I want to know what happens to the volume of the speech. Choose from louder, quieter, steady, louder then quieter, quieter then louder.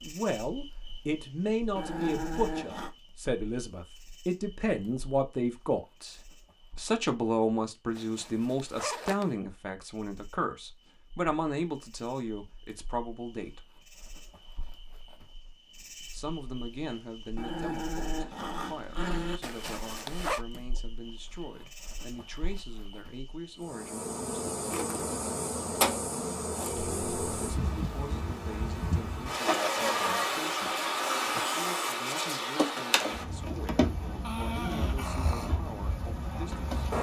quieter.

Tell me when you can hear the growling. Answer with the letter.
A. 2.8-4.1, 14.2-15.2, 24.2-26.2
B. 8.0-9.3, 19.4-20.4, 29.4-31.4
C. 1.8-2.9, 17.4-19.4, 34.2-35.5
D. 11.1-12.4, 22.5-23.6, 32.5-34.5
C.